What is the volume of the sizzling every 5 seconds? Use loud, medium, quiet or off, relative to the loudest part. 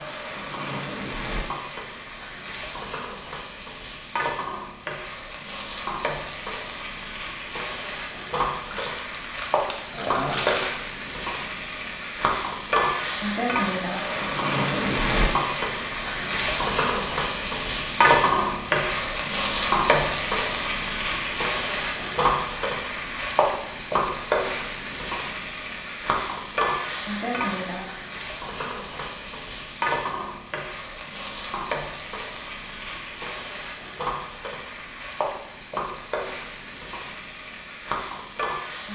medium, medium, loud, loud, loud, medium, medium, medium.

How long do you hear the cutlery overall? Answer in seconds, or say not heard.
not heard.